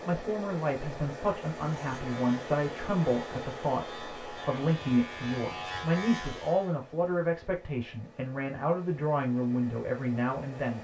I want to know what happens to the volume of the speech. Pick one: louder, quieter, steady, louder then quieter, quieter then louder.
steady.